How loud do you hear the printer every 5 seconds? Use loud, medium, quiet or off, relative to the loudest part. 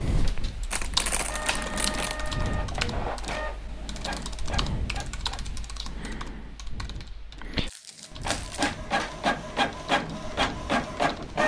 medium, loud, loud.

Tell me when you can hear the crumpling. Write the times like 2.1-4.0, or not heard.
0.7-2.3, 7.5-8.8.